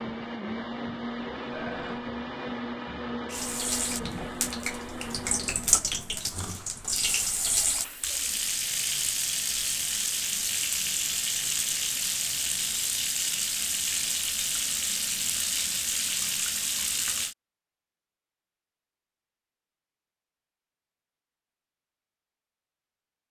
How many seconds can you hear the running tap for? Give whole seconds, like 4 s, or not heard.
14 s.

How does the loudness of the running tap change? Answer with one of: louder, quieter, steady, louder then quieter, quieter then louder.
steady.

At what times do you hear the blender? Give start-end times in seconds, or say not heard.
0.0-5.8.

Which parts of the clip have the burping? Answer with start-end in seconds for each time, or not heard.
1.5-2.0.